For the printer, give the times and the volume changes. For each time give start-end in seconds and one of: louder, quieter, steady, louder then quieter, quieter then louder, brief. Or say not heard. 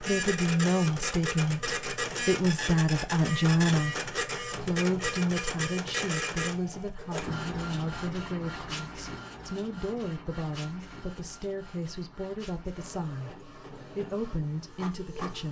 0.0-15.4 quieter.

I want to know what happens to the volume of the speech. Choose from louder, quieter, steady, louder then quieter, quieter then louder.
quieter.